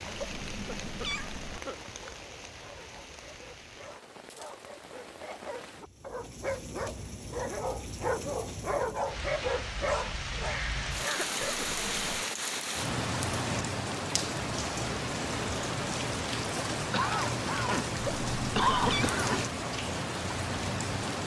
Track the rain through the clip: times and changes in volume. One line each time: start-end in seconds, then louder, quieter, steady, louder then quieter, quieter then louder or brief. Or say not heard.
0.0-21.2 louder.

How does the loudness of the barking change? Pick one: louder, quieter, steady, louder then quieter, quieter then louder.
louder.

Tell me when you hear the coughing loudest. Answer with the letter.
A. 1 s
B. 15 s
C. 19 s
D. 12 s
C.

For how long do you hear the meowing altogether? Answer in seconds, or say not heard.
3 s.